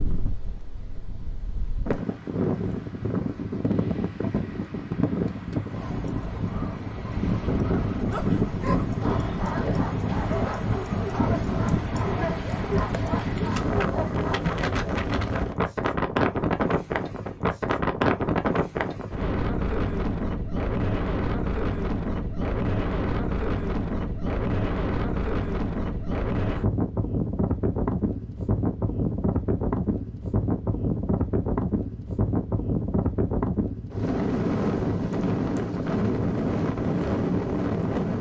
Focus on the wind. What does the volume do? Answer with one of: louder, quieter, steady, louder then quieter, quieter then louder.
steady.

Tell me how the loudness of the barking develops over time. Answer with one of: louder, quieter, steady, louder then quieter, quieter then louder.
steady.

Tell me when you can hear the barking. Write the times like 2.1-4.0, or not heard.
8.1-14.4.